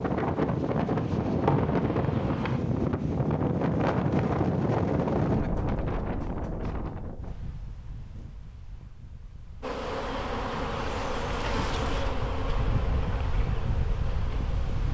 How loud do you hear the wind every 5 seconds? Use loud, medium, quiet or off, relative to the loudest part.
loud, medium, medium.